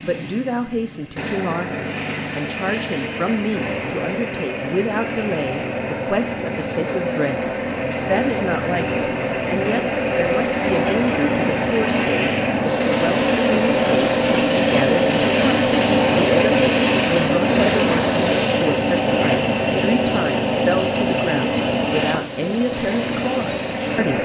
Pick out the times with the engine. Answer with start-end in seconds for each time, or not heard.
0.0-24.1.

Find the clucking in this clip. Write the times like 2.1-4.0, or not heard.
not heard.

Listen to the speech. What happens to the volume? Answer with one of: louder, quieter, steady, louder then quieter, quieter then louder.
steady.